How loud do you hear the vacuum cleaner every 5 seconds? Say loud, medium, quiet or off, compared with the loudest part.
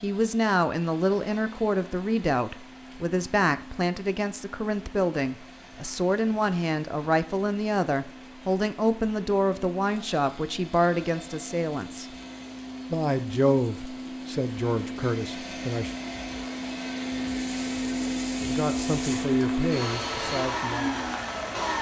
quiet, quiet, medium, loud, loud.